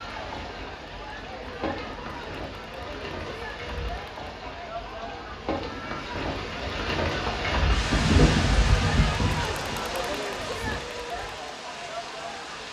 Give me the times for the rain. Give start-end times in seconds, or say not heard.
0.0-12.6.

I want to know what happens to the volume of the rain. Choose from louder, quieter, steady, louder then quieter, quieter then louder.
louder then quieter.